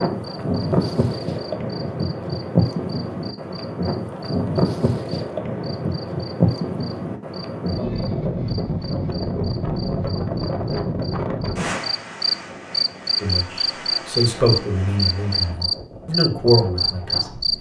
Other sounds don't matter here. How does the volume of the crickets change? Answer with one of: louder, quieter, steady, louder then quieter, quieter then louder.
louder.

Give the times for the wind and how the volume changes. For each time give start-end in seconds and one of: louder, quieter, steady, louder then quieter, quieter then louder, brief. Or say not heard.
0.0-17.5 quieter.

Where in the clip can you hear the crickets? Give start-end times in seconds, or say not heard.
0.0-17.5.